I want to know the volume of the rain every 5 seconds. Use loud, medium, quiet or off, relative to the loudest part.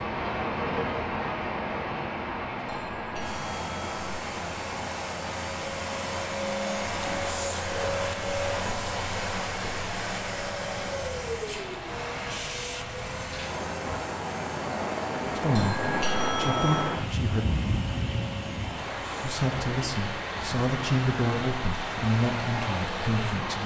loud, medium, medium, loud, loud.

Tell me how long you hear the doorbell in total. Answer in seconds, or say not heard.
3 s.